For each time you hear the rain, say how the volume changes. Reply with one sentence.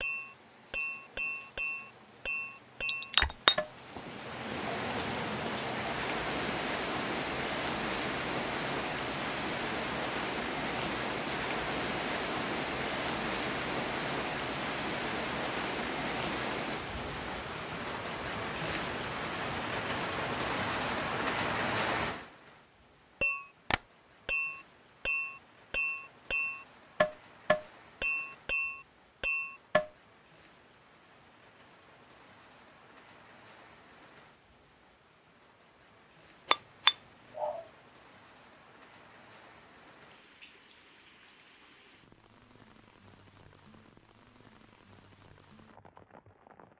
You can hear the rain from 0.0 to 46.7 s, getting quieter.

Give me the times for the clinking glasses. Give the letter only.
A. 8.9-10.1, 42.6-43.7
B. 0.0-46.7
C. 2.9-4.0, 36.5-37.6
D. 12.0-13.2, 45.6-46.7
C.